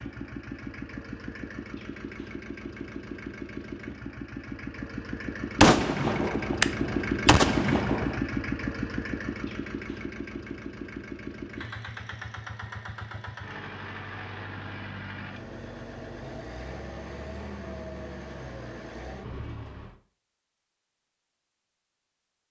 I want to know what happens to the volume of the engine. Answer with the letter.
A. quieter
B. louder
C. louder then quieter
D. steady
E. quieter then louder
C.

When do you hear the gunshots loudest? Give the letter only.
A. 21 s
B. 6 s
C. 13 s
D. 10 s
B.